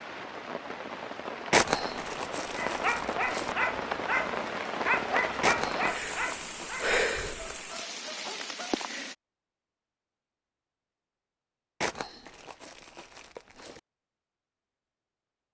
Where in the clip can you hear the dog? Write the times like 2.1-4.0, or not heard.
2.5-8.6.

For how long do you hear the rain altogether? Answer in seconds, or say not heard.
9 s.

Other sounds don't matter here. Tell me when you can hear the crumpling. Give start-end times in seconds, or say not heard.
1.5-3.5, 5.4-7.3, 11.8-13.8.